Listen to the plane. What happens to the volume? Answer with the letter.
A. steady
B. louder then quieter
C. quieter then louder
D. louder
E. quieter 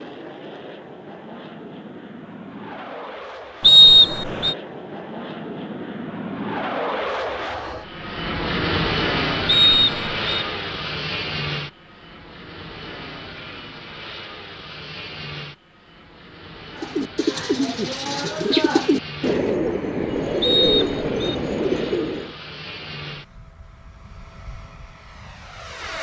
B.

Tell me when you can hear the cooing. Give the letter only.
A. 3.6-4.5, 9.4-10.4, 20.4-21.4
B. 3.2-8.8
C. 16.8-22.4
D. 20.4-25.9
C.